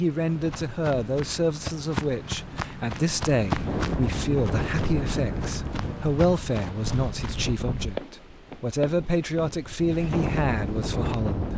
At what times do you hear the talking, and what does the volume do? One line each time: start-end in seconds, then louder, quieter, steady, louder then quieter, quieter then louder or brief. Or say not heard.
0.0-11.5 steady.